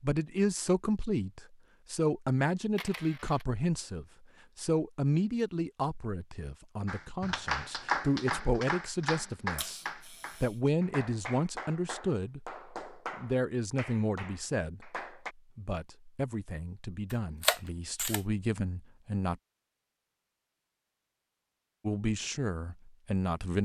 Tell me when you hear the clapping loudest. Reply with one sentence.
The loudest moment of the clapping is at 8 seconds.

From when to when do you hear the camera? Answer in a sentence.
You can hear the camera from 2.8 to 3.5 s, from 9.6 to 10.6 s and from 17.1 to 18.2 s.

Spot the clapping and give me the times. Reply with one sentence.
The clapping can be heard from 6.8 to 15.3 s.